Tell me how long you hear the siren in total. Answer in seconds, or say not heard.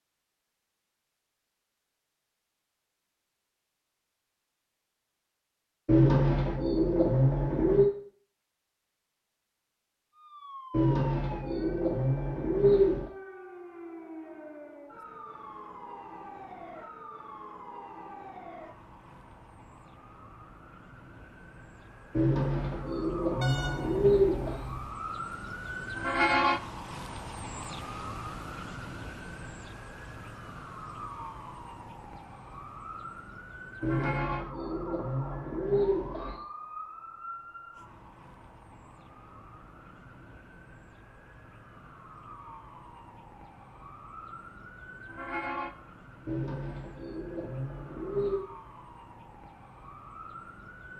41 s.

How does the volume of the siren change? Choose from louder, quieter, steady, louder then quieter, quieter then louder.
louder then quieter.